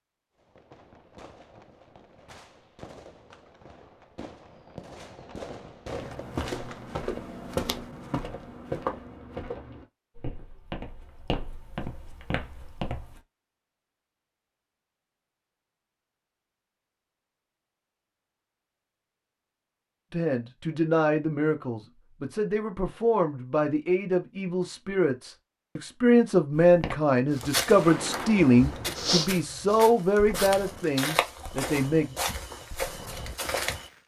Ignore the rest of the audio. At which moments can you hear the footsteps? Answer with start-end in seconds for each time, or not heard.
5.8-13.2, 26.6-33.9.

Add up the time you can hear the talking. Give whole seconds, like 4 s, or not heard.
12 s.